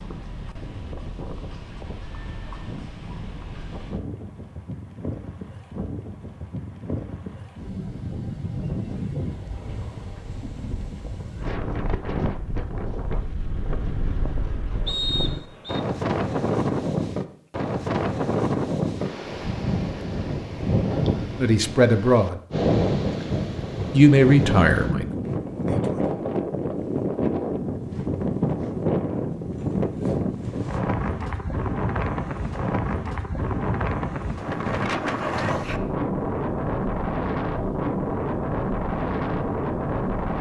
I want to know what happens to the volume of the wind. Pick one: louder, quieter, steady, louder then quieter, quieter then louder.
louder.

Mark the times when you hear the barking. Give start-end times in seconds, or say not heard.
not heard.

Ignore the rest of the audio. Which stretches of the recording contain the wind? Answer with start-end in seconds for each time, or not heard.
0.0-40.3.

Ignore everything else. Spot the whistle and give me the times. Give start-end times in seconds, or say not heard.
14.8-15.8.